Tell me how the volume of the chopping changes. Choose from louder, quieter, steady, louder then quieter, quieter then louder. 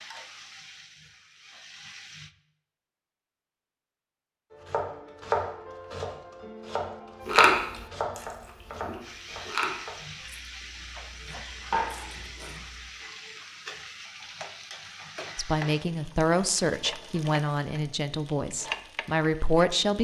quieter then louder.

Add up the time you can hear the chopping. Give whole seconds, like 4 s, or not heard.
8 s.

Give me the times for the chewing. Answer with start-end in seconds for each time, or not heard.
7.2-12.8.